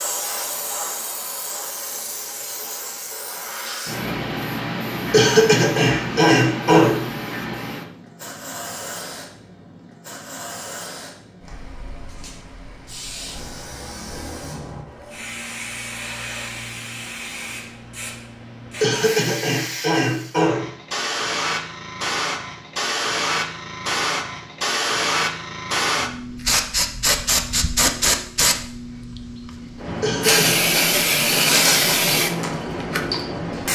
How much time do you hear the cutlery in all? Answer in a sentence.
The cutlery can be heard for 3 seconds in total.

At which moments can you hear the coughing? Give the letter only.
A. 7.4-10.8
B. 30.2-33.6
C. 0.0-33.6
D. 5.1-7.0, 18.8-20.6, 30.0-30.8
D.